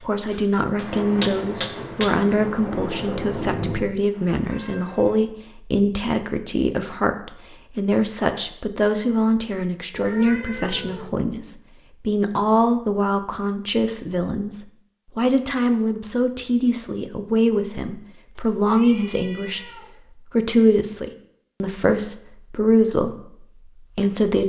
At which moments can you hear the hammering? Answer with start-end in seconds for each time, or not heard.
0.0-2.1.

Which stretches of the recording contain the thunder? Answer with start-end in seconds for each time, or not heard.
0.8-3.9.